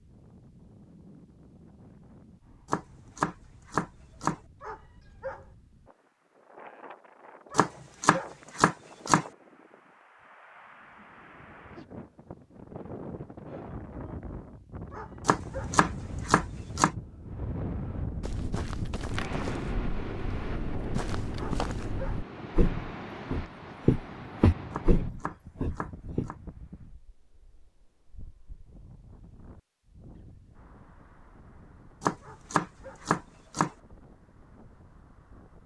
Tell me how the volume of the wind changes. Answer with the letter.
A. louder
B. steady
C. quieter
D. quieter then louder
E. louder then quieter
E.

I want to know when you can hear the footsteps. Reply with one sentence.
The footsteps can be heard from 18.2 to 26.2 s.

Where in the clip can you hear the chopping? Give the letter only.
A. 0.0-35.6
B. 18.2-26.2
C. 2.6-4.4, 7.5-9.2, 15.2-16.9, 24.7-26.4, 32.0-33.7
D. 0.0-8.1
C.